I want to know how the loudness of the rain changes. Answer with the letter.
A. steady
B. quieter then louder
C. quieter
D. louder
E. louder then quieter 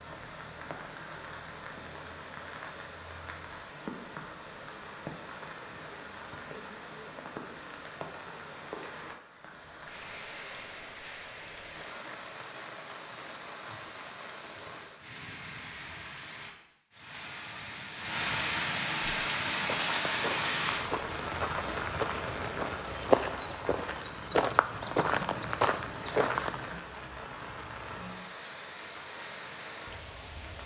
E.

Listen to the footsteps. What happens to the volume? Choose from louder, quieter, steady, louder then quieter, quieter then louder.
louder.